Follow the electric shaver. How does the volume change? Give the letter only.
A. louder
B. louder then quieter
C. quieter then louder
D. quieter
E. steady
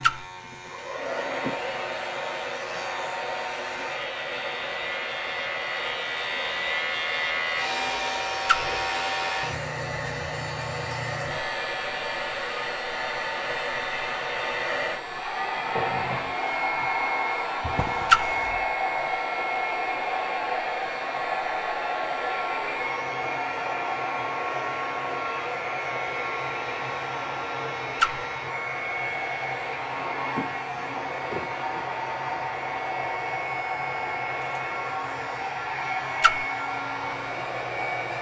D.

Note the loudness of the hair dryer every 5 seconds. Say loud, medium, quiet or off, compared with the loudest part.
medium, medium, loud, loud, loud, loud, loud, loud.